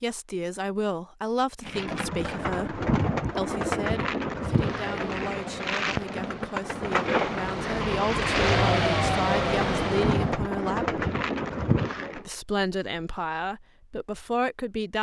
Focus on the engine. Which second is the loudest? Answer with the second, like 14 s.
9 s.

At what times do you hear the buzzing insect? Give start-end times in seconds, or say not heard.
not heard.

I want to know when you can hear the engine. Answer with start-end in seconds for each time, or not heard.
4.3-10.3.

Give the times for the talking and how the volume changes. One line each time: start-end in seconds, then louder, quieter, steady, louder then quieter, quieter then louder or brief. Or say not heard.
0.0-11.0 quieter then louder
12.2-14.9 brief.